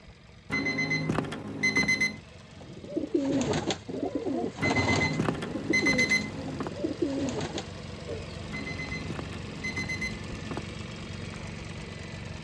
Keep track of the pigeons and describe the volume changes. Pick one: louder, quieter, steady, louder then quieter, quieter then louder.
quieter then louder.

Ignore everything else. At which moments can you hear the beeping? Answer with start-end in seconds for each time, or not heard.
0.5-2.2, 4.6-6.7, 8.5-10.7.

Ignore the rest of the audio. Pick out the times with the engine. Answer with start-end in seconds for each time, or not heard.
0.0-12.3.